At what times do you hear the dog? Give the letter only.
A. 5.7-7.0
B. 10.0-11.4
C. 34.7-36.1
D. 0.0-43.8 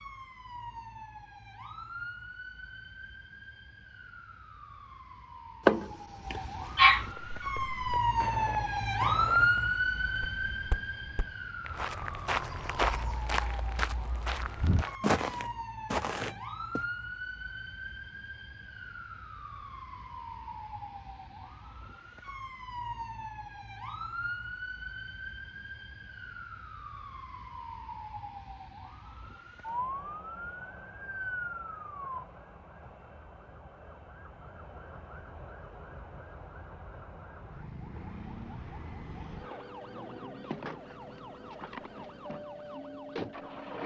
A.